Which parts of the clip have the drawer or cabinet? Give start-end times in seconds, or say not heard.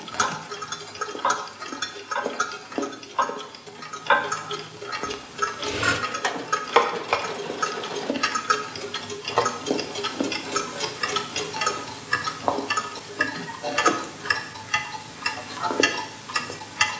not heard.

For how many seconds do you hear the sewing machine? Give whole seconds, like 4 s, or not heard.
3 s.